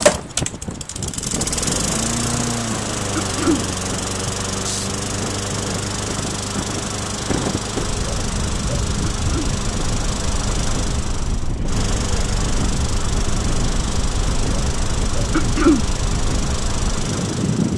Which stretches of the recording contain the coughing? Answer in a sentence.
You can hear the coughing from 3.1 to 3.6 s, from 9.1 to 9.6 s and from 15.3 to 15.8 s.